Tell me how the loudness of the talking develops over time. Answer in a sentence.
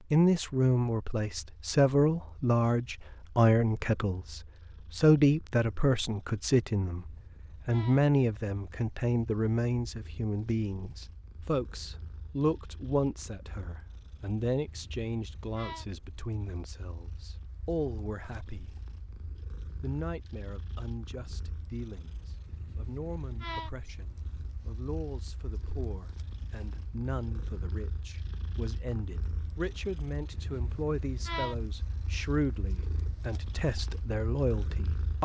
The volume of the talking goes down, then up.